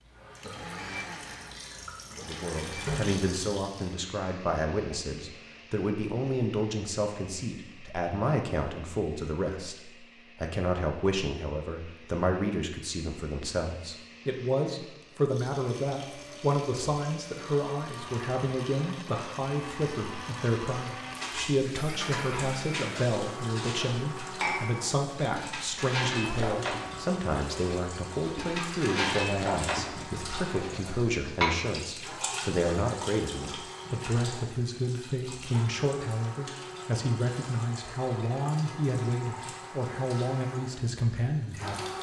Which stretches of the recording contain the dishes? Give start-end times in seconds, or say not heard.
21.1-31.6.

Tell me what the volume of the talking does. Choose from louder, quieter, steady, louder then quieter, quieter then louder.
steady.